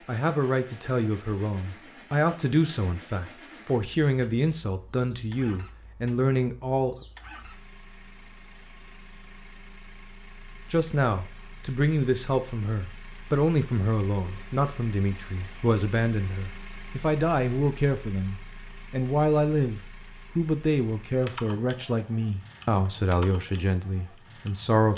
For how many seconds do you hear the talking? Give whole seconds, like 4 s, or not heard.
21 s.